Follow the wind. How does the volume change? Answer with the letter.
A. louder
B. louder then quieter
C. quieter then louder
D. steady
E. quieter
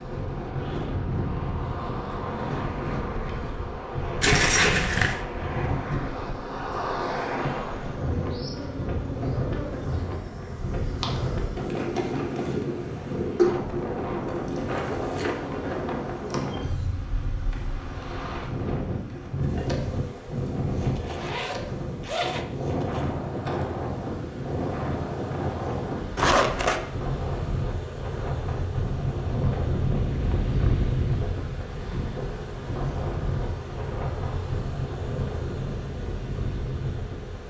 D.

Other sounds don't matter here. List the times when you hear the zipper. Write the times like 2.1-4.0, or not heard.
4.2-5.2, 21.0-22.4, 26.1-26.8.